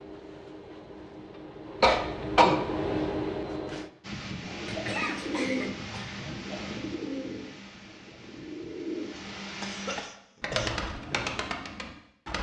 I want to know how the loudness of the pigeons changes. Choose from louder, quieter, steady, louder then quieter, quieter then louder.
quieter then louder.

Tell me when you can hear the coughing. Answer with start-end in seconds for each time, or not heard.
1.8-2.6, 4.7-6.2, 9.2-10.8.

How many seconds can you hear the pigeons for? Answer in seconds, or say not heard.
8 s.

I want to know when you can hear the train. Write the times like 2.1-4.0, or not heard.
0.0-3.9.